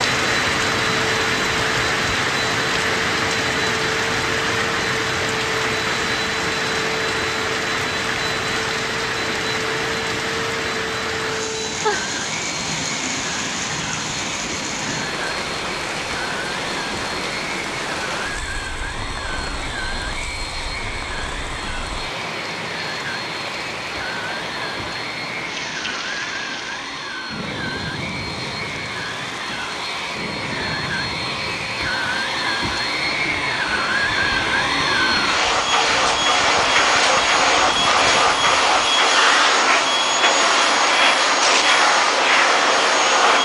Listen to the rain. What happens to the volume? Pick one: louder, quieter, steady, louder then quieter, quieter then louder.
quieter.